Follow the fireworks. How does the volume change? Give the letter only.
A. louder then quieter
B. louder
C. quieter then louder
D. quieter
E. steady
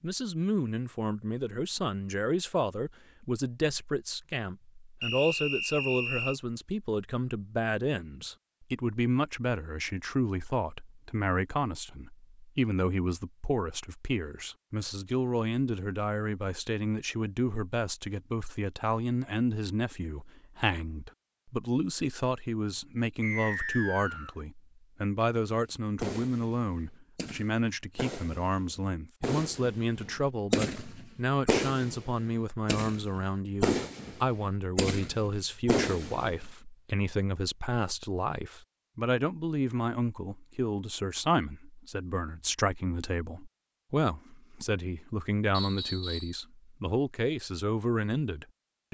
B.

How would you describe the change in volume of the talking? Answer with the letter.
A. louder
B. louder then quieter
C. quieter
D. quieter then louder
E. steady
E.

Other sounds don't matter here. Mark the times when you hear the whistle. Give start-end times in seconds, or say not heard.
5.0-6.3, 23.2-24.4, 45.5-46.4.